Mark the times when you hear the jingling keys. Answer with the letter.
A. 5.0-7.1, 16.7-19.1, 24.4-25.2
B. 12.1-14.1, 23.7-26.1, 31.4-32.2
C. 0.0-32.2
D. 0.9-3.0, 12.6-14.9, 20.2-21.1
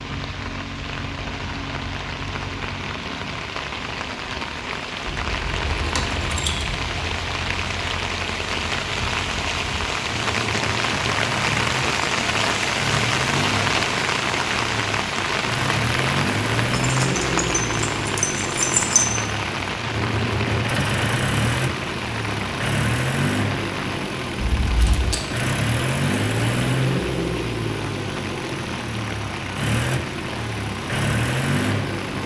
A.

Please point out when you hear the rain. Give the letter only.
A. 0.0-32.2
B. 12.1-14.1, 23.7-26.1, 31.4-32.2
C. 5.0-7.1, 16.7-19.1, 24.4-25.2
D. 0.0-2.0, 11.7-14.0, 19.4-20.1
A.